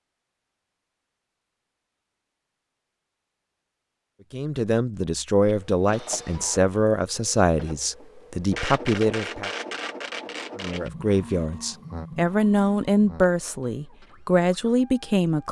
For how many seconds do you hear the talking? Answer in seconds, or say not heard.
10 s.